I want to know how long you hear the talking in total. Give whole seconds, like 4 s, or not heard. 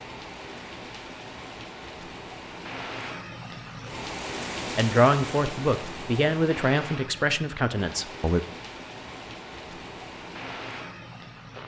4 s.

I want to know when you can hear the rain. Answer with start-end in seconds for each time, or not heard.
0.0-11.6.